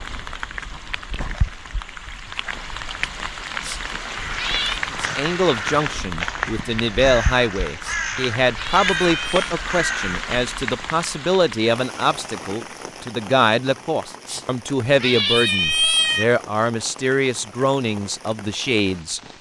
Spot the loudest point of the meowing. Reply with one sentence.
The volume of the meowing peaks at 16 seconds.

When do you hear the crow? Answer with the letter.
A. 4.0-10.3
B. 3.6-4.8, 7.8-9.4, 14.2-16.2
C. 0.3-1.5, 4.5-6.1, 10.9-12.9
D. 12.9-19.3
A.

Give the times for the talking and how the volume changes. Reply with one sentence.
The talking can be heard from 4.9 to 19.2 s, at a steady volume.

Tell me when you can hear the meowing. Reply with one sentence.
The meowing can be heard from 3.6 to 4.8 s, from 7.8 to 9.4 s and from 14.2 to 16.2 s.